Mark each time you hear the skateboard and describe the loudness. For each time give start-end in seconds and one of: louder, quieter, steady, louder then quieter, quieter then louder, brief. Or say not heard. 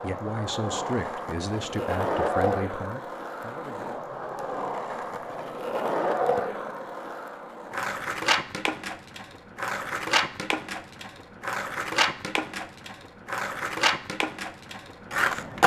0.0-15.6 steady.